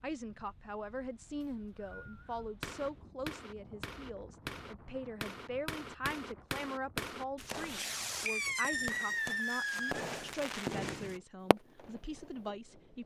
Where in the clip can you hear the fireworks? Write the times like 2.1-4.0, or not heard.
2.6-12.0.